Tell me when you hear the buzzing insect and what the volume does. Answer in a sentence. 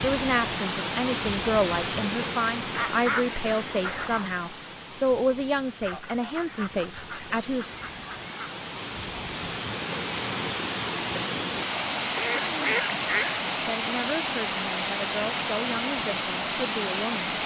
The buzzing insect can't be heard in this clip.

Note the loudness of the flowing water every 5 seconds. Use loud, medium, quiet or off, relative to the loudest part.
loud, medium, loud, loud.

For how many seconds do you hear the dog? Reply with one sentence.
You can't hear the dog here.